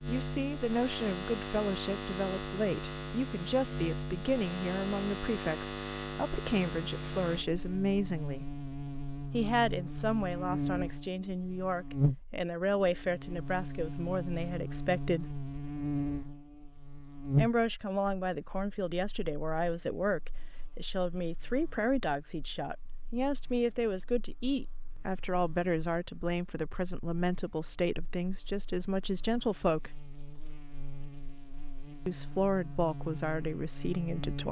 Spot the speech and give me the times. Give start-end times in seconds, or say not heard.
0.1-8.4, 9.3-15.2, 17.4-30.0, 32.0-34.4.